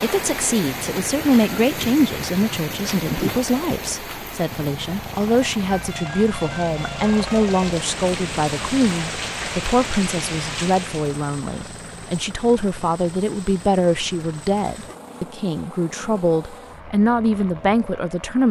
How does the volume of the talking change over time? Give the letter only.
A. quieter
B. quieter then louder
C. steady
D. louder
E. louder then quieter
C.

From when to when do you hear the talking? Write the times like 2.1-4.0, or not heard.
0.0-18.4.